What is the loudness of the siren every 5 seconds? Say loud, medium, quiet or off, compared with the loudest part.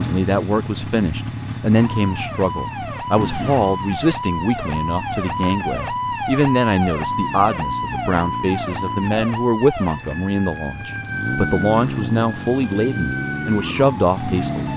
loud, loud, medium.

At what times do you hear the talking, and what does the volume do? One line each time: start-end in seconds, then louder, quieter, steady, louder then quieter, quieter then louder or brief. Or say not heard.
0.0-14.7 steady.